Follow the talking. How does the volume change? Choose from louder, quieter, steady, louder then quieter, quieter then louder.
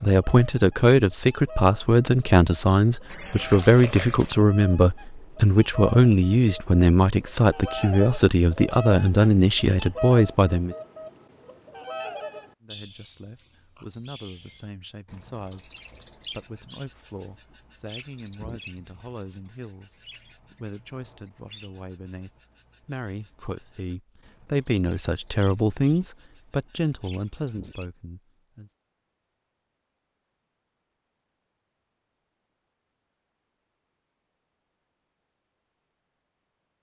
quieter then louder.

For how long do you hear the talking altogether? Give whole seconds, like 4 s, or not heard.
27 s.